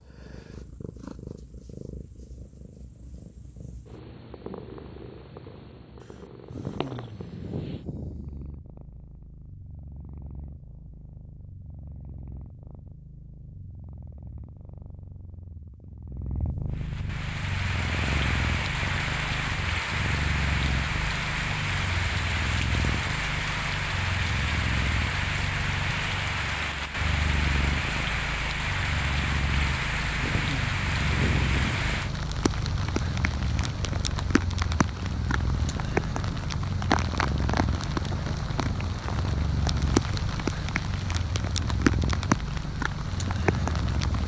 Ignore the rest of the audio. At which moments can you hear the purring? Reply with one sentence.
You can hear the purring from 0.0 to 44.2 s.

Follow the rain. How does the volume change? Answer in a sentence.
The loudness of the rain stays about the same.